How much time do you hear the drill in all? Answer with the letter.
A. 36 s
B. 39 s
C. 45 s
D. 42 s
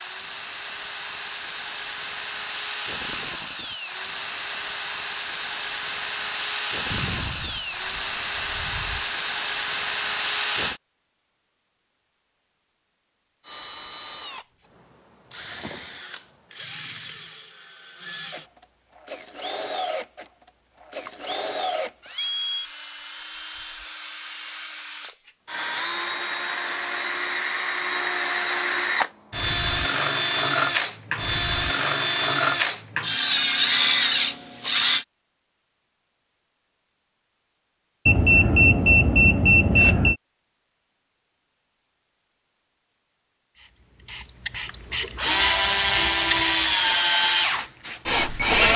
A.